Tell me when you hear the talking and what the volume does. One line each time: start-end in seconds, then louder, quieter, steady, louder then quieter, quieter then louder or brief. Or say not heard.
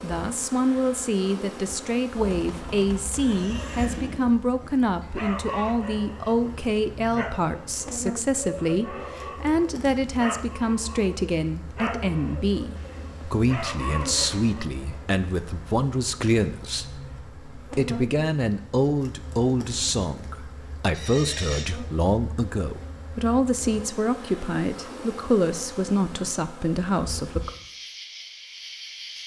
0.0-27.5 steady.